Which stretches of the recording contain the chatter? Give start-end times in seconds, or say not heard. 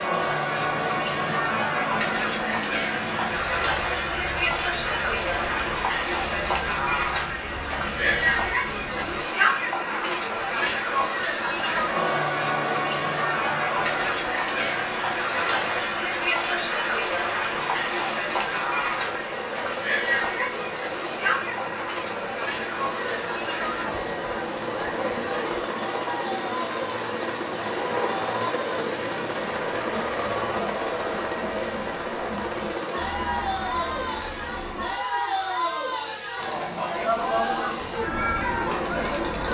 0.0-39.4.